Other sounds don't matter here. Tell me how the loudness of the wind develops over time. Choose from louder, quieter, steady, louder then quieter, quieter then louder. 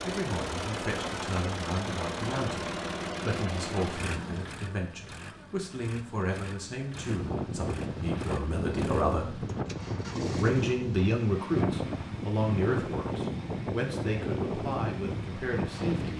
steady.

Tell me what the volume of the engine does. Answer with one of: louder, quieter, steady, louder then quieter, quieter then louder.
quieter.